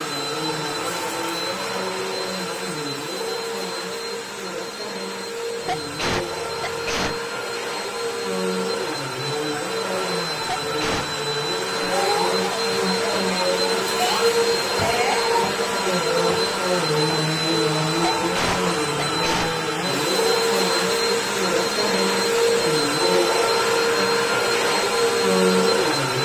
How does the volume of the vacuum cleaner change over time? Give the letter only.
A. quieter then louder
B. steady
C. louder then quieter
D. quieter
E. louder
E.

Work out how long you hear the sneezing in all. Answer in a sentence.
The sneezing can be heard for 4 seconds in total.